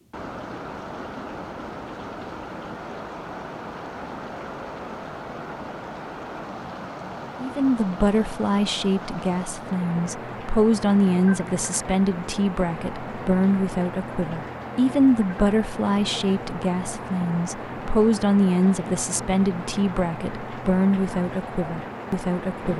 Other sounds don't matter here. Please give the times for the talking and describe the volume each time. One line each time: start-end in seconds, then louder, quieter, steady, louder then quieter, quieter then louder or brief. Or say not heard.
7.4-22.7 steady.